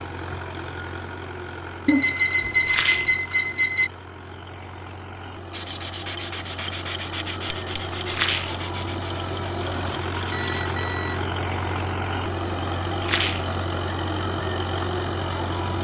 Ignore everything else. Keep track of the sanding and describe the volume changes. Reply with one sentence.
The volume of the sanding goes down.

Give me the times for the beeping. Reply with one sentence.
The beeping can be heard from 1.9 to 3.9 s and from 10.3 to 11.2 s.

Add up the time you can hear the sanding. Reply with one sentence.
The sanding can be heard for 5 seconds in total.